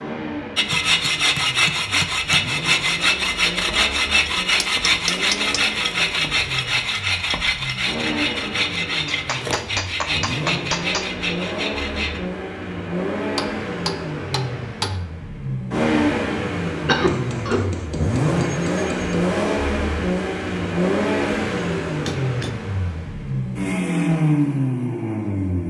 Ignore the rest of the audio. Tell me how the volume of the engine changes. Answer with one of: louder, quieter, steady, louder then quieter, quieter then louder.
louder.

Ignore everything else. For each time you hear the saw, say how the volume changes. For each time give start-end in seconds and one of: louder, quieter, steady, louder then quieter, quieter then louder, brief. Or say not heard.
0.6-12.2 quieter.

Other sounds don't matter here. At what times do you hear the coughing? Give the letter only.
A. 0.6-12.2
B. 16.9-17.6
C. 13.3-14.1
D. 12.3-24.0
B.